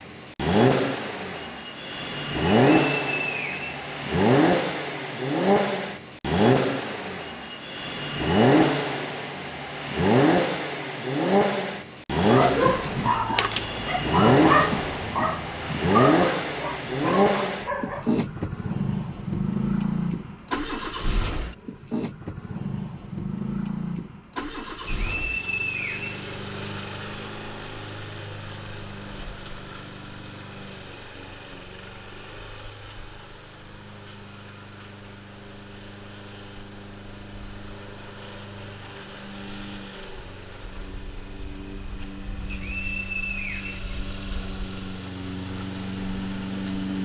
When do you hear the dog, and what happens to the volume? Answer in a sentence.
You can hear the dog from 12.2 to 18.1 s, getting quieter.